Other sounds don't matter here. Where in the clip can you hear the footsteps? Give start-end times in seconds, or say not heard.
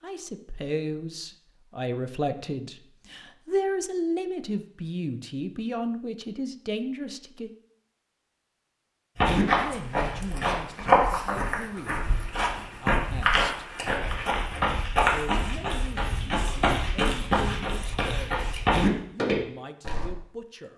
9.2-20.1.